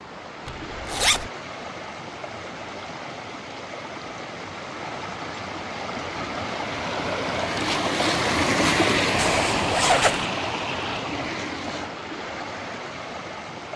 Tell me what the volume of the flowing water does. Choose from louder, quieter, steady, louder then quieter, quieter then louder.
louder then quieter.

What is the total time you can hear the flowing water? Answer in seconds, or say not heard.
14 s.